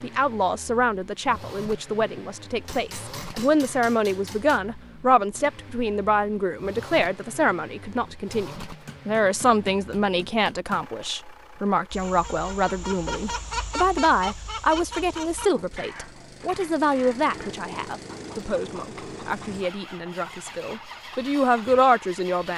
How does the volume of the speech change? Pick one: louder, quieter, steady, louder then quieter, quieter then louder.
steady.